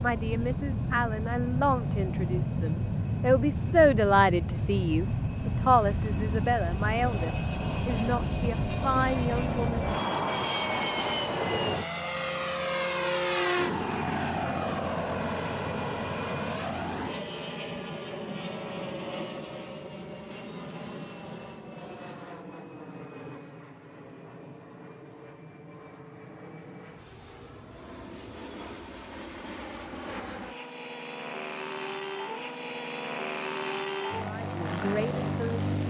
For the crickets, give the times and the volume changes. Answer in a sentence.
You can't hear the crickets here.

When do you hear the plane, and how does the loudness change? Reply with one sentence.
You can hear the plane from 0.0 to 35.8 s, getting quieter then louder.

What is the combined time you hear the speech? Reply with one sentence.
You can hear the speech for 11 seconds altogether.